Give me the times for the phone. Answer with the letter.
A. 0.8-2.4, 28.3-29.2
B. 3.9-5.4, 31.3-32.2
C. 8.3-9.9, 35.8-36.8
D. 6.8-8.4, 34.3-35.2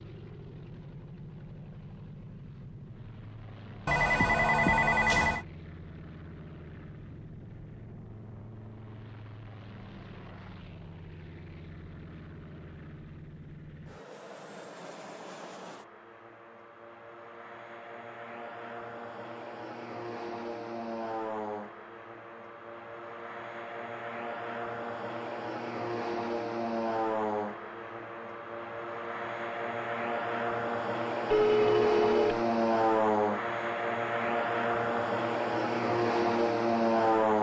B.